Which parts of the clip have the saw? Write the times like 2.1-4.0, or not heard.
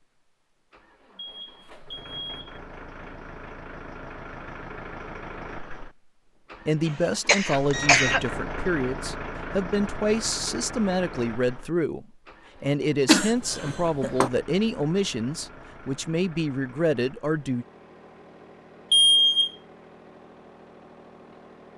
not heard.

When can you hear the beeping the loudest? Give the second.
19 s.